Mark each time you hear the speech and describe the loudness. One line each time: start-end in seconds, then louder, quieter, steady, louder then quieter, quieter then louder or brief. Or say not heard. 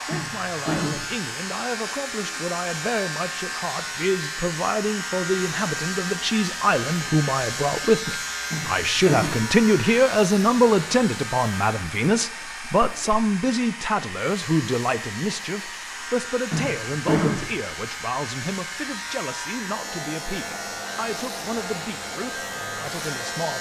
0.0-23.5 louder then quieter.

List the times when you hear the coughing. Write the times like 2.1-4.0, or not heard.
0.1-1.1, 8.5-9.5, 16.5-17.5.